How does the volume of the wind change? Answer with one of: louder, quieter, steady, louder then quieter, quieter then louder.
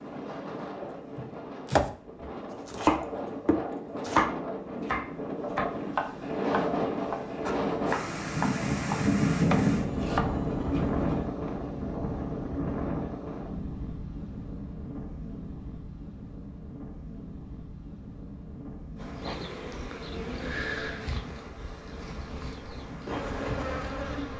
louder then quieter.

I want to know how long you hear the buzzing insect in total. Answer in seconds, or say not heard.
5 s.